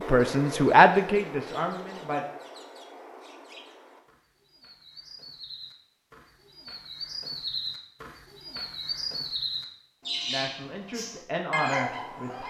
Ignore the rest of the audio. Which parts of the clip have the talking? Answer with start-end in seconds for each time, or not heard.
0.1-2.2, 10.2-12.4.